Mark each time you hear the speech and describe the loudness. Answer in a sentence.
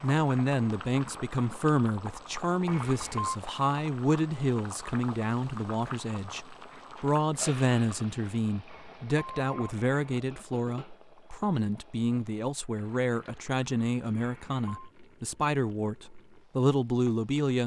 The speech can be heard from 0.0 to 17.6 s, at a steady volume.